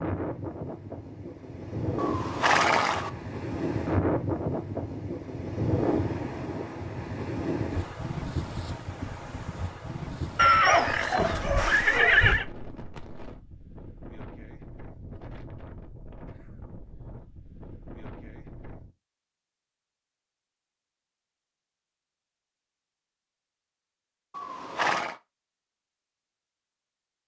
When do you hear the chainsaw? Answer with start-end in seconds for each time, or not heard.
not heard.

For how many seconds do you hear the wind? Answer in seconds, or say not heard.
19 s.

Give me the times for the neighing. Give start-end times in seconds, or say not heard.
1.9-3.1, 10.3-12.4, 24.3-25.1.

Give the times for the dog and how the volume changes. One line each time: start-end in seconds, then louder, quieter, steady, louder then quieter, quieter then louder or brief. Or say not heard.
not heard.